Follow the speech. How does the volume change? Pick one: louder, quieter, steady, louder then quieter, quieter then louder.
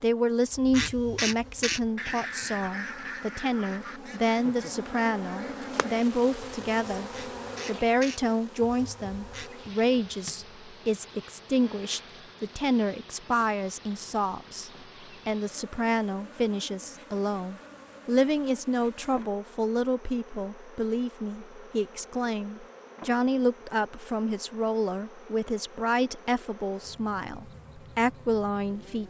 steady.